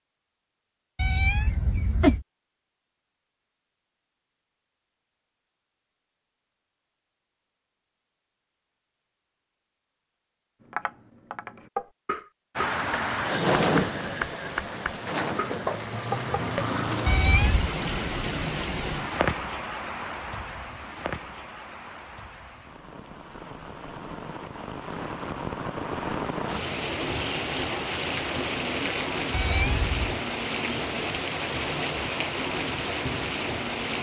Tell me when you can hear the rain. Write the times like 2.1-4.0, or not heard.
12.6-33.9.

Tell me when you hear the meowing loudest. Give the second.
2 s.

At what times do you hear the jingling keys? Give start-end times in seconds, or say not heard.
not heard.